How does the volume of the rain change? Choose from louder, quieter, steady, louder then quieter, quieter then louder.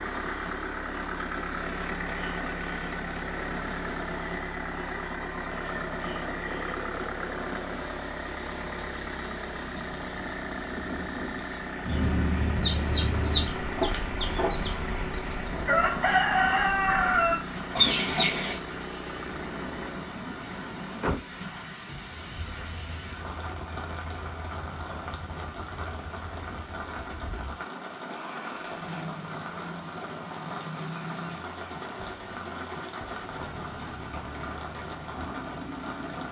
steady.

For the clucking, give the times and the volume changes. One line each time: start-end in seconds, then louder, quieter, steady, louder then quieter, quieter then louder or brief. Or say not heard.
11.8-18.6 quieter then louder.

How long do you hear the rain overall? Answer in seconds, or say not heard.
36 s.